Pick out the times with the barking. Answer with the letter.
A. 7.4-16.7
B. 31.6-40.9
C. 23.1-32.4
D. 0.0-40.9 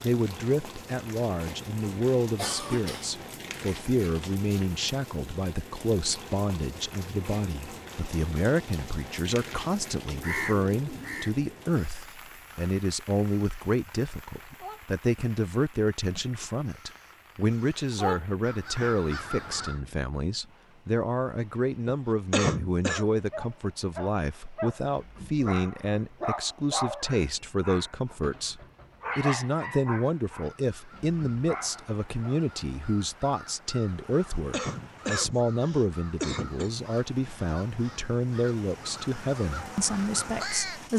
C.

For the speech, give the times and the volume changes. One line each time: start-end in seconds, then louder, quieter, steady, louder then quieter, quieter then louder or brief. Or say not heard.
0.0-40.9 steady.